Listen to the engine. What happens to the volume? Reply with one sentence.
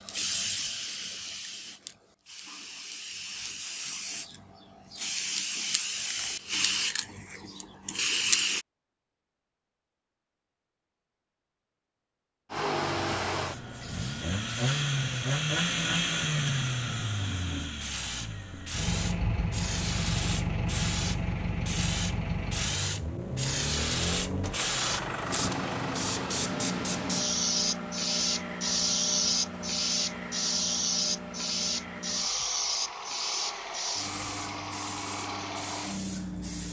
The loudness of the engine goes down.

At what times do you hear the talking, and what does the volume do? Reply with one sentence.
The talking can't be heard in this clip.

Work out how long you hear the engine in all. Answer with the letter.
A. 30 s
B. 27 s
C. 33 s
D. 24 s
D.